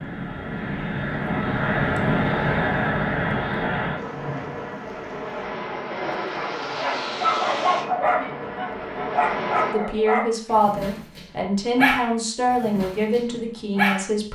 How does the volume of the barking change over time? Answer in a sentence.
The loudness of the barking goes down.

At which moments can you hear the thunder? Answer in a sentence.
You can hear the thunder from 4.0 to 5.5 s.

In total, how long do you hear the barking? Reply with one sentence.
You can hear the barking for 8 seconds altogether.